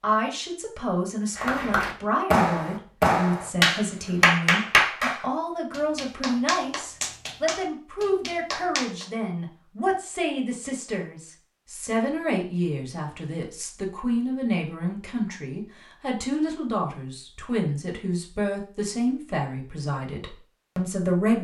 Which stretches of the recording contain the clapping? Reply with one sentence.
You can hear the clapping from 1.4 to 9.1 s.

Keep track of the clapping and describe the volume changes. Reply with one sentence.
The volume of the clapping goes down.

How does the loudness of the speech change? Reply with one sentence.
The volume of the speech stays about the same.